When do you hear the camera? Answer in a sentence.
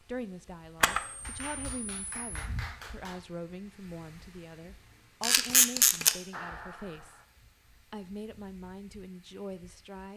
You can hear the camera from 0.8 to 2.4 s and from 5.2 to 6.2 s.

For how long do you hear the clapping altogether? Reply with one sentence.
You can hear the clapping for 3 seconds altogether.